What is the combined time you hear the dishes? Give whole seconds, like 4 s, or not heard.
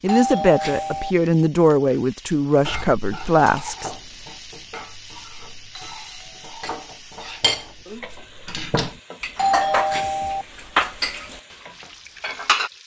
10 s.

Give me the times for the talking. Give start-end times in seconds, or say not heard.
0.0-3.9.